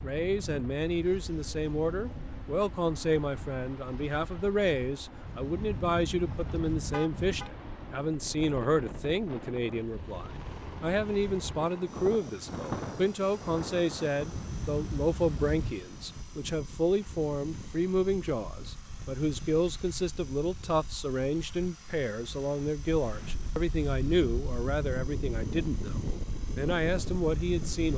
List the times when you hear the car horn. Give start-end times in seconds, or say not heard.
5.2-7.5, 14.2-15.8.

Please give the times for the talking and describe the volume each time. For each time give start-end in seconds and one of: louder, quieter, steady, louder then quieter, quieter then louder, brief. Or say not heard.
0.0-27.9 steady.